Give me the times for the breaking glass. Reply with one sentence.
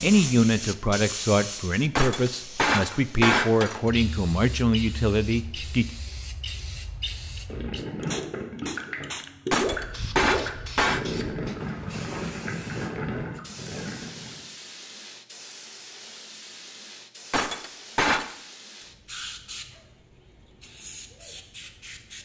You can hear the breaking glass from 1.9 to 3.9 s, from 9.5 to 11.1 s and from 17.3 to 18.2 s.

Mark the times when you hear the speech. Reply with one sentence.
The speech can be heard from 0.0 to 5.8 s.